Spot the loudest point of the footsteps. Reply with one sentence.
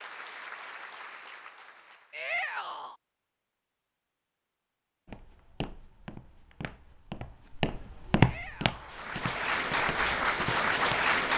The volume of the footsteps peaks at 8 seconds.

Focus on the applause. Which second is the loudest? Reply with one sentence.
The loudest moment of the applause is at 11 seconds.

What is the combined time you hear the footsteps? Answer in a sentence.
The footsteps can be heard for 6 seconds in total.